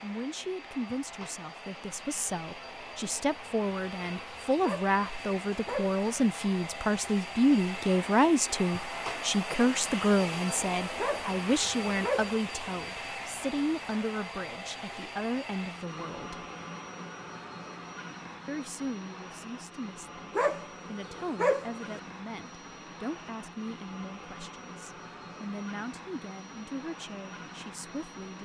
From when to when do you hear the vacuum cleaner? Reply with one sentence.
You can hear the vacuum cleaner from 0.0 to 28.4 s.